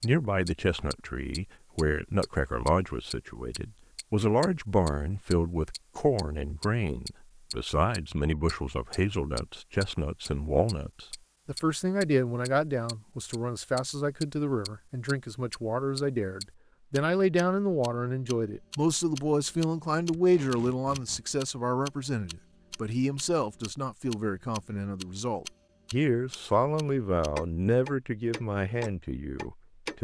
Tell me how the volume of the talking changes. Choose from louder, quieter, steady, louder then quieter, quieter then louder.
steady.